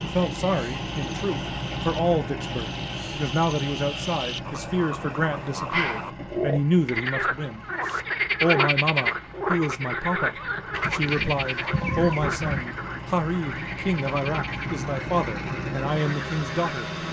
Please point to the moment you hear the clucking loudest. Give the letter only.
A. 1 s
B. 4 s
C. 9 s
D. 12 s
D.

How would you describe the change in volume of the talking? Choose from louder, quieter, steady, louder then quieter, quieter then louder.
steady.